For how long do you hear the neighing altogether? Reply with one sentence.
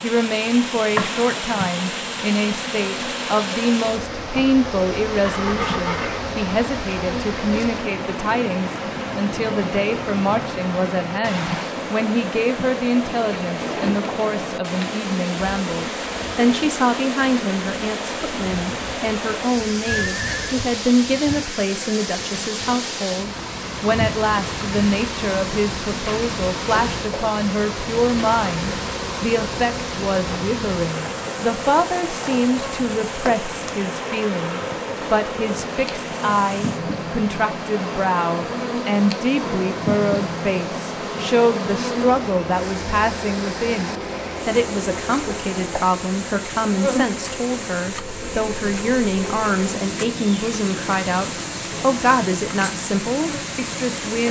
The neighing can be heard for 2 seconds in total.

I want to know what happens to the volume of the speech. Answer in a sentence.
The loudness of the speech stays about the same.